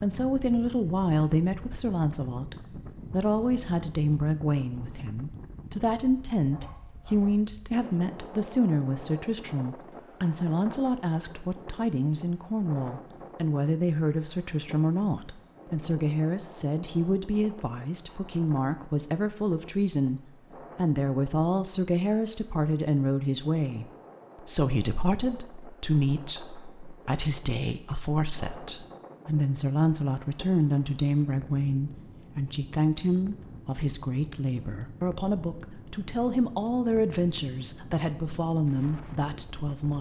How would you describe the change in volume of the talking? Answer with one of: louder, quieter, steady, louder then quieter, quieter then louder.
steady.